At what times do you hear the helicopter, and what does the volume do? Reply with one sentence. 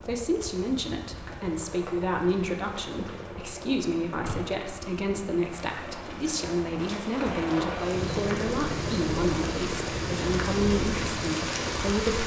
The helicopter can be heard from 0.0 to 12.2 s, getting louder.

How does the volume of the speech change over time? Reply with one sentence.
The loudness of the speech stays about the same.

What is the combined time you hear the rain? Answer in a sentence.
You can hear the rain for 12 seconds altogether.